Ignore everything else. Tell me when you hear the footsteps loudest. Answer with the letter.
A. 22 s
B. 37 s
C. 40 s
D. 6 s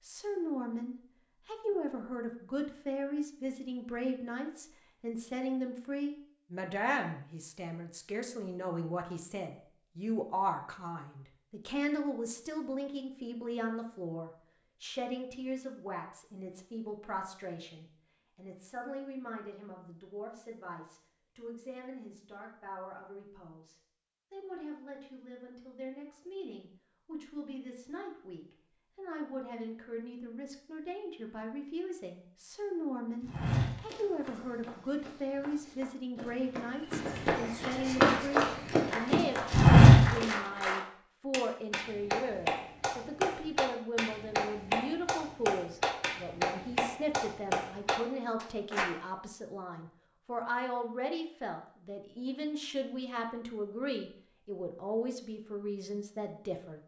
C.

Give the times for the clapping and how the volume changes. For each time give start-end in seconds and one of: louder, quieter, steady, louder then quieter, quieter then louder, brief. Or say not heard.
37.9-48.9 steady.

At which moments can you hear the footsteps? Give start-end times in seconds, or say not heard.
33.2-40.2.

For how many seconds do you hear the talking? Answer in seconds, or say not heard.
57 s.